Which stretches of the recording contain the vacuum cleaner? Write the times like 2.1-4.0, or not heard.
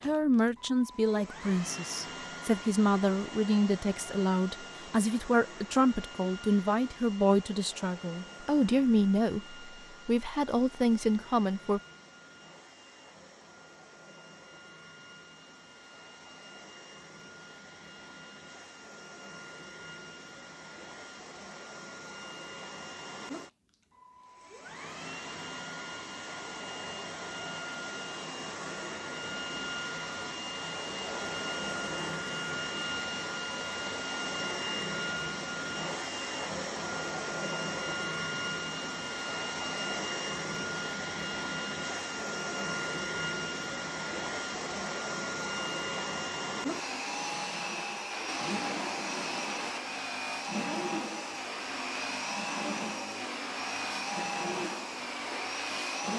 0.0-56.1.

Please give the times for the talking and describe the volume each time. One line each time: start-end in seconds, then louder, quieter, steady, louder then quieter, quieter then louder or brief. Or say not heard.
0.0-11.8 steady.